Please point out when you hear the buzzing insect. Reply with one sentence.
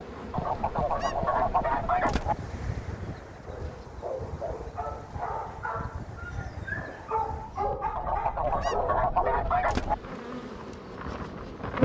The buzzing insect can be heard from 0.0 to 3.5 s and from 9.2 to 11.8 s.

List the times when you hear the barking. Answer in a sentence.
The barking can be heard from 3.4 to 9.6 s.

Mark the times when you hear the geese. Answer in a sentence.
You can hear the geese from 0.3 to 2.4 s and from 8.0 to 9.9 s.